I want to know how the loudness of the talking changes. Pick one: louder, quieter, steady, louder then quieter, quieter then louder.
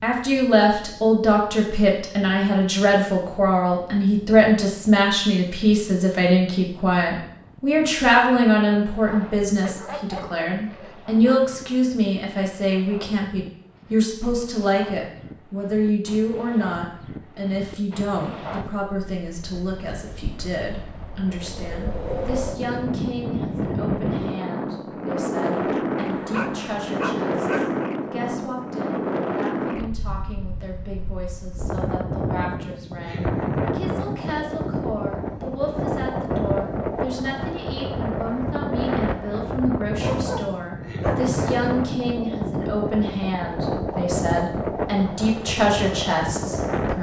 quieter then louder.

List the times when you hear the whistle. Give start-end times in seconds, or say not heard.
not heard.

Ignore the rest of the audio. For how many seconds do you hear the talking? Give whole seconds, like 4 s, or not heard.
47 s.